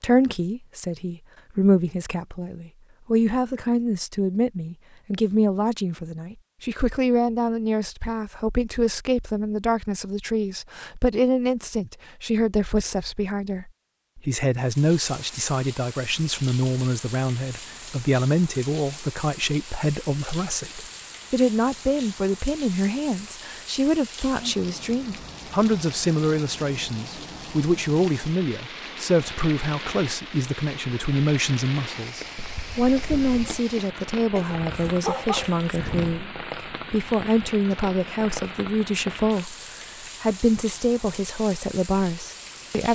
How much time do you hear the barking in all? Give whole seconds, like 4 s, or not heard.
2 s.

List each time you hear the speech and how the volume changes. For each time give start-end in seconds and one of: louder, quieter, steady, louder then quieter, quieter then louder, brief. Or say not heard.
0.0-42.9 steady.